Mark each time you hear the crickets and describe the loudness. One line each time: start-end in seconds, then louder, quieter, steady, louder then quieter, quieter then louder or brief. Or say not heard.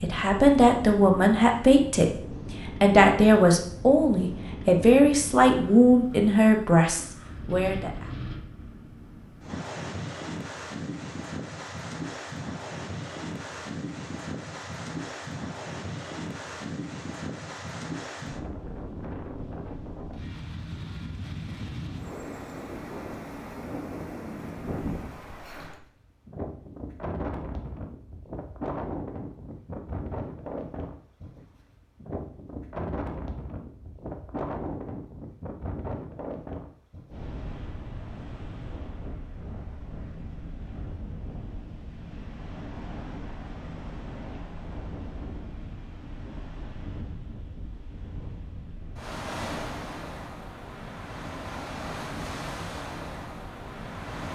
not heard.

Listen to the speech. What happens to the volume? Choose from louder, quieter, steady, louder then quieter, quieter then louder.
steady.